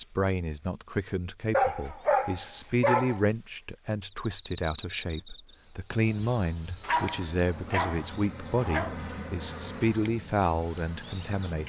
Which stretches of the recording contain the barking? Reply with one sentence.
The barking can be heard from 1.5 to 3.2 s and from 6.8 to 8.9 s.